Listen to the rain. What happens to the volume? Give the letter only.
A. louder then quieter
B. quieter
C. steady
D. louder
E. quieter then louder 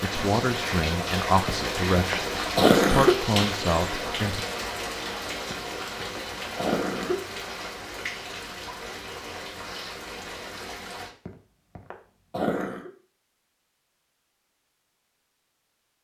B.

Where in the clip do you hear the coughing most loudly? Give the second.
3 s.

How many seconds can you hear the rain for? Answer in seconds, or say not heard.
11 s.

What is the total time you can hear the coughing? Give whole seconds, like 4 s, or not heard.
5 s.